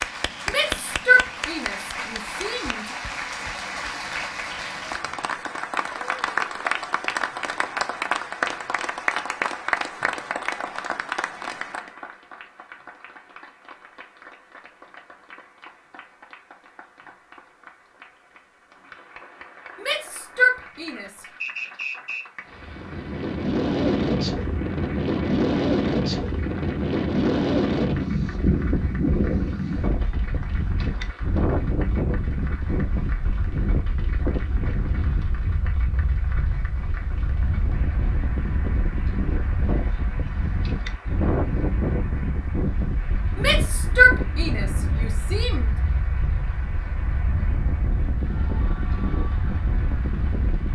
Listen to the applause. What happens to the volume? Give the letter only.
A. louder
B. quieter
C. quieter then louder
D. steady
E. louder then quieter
B.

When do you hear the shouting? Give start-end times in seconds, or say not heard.
0.5-2.9, 19.8-21.2, 43.4-45.8.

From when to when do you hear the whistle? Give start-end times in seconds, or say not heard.
21.4-22.2.